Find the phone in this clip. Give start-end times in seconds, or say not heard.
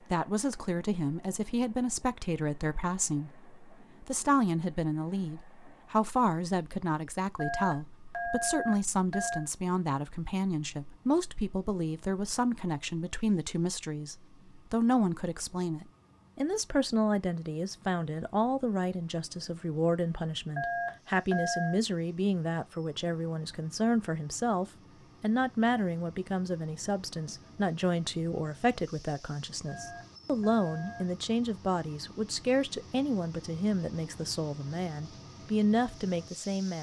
7.3-9.4, 20.6-21.8, 29.6-31.1.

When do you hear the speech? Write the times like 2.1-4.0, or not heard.
0.1-36.7.